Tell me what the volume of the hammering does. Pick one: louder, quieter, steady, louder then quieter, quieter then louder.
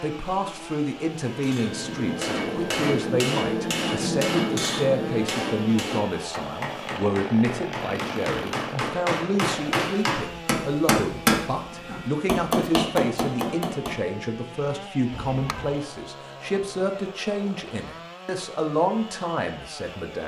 quieter then louder.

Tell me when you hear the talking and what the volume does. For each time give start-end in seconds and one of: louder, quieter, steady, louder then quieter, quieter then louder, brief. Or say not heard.
0.0-20.2 steady.